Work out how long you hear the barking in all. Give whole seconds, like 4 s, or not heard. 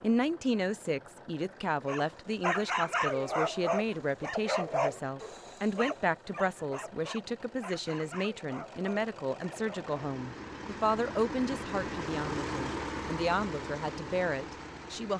8 s.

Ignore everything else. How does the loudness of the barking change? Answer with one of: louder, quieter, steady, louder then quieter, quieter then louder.
quieter.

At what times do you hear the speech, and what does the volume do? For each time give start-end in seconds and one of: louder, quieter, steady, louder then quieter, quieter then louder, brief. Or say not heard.
0.0-15.1 steady.